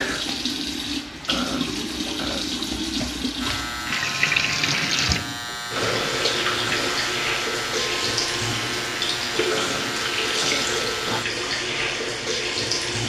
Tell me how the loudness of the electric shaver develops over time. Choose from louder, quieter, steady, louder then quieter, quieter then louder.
steady.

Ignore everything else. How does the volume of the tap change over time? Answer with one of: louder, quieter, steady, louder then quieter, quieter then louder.
steady.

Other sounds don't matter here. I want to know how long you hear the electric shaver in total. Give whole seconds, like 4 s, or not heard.
8 s.